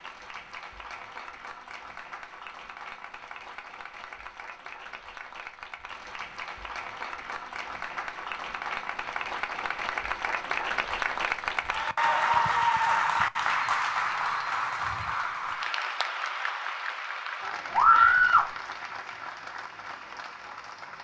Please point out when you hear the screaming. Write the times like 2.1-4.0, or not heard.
17.7-18.5.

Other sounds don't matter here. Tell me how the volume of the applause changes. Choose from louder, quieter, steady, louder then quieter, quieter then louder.
louder then quieter.